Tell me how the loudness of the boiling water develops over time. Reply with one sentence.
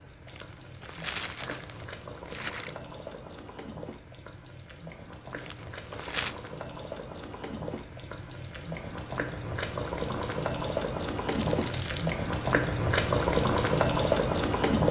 The loudness of the boiling water goes up.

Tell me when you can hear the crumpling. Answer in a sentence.
You can hear the crumpling from 0.2 to 2.8 s, from 5.3 to 6.3 s and from 11.3 to 12.2 s.